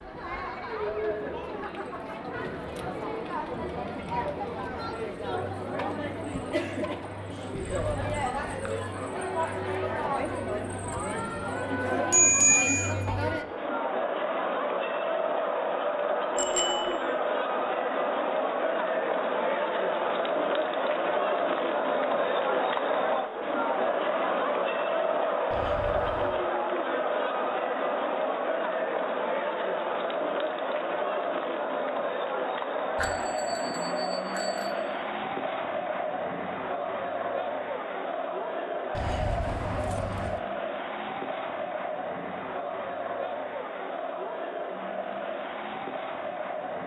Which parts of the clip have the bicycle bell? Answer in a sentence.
The bicycle bell can be heard from 12.1 to 12.9 s, from 16.4 to 16.9 s and from 33.0 to 34.8 s.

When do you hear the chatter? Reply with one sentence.
You can hear the chatter from 0.0 to 46.8 s.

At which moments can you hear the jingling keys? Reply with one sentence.
The jingling keys can be heard from 7.5 to 8.8 s, from 25.5 to 26.4 s and from 39.0 to 40.4 s.